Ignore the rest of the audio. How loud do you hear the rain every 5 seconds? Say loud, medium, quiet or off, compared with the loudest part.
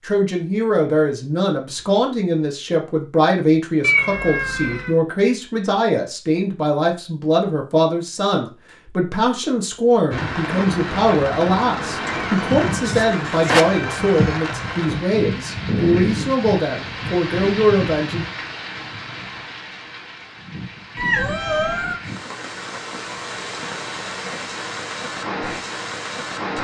off, off, loud, loud, medium, loud.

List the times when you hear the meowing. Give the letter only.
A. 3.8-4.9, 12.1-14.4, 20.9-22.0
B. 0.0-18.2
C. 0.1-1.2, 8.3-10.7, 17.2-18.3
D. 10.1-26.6
A.